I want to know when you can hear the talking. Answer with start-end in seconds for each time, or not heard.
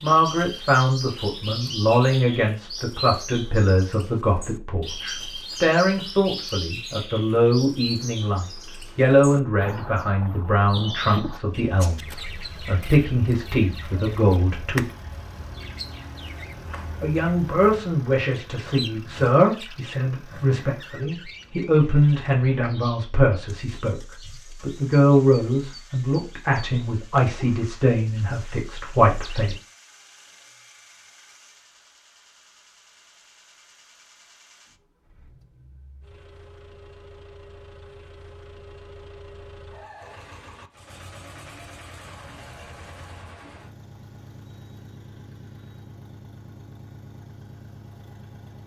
0.0-14.8, 17.0-24.0, 24.6-29.6.